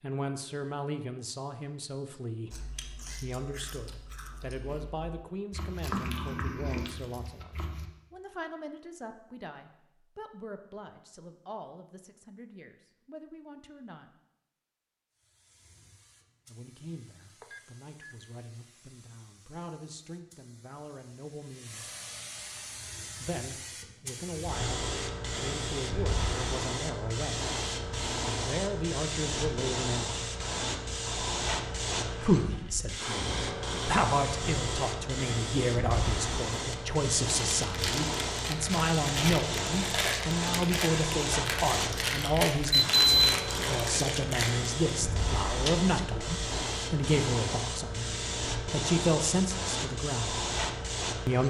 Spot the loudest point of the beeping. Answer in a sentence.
The volume of the beeping peaks at 43 seconds.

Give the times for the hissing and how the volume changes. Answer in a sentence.
You can hear the hissing from 15.1 to 51.4 s, getting louder.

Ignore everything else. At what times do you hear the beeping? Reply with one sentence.
The beeping can be heard from 17.4 to 18.3 s and from 42.7 to 43.3 s.